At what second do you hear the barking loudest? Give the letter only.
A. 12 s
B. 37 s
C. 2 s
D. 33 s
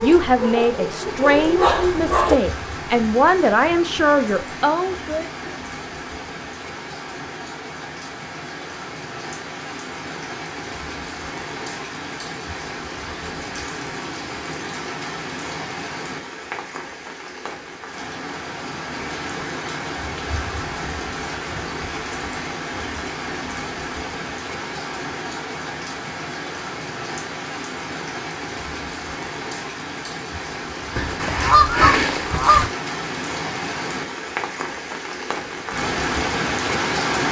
C.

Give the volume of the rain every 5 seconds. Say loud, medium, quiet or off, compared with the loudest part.
medium, medium, medium, medium, medium, medium, medium, loud.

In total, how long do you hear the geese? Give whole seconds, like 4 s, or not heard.
2 s.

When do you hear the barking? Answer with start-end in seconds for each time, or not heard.
0.0-2.4.